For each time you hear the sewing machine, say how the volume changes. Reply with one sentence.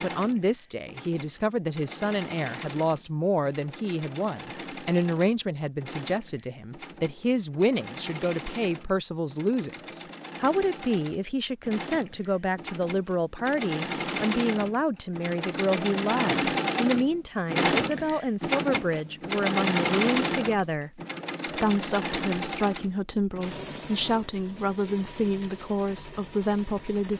You can hear the sewing machine from 0.0 to 27.1 s, getting louder then quieter.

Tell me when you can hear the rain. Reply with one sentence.
The rain can't be heard in this clip.